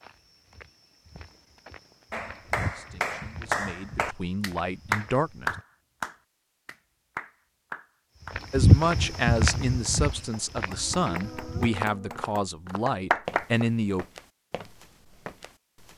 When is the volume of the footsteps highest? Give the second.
9 s.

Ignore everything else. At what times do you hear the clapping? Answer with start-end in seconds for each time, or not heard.
2.1-13.7.